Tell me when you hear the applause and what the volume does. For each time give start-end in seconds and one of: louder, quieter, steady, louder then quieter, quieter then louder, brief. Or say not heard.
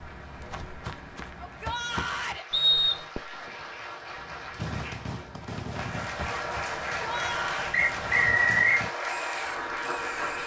0.0-10.4 louder.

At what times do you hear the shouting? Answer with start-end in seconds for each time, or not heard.
1.4-2.5, 7.0-7.7.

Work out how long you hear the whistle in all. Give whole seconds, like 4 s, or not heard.
2 s.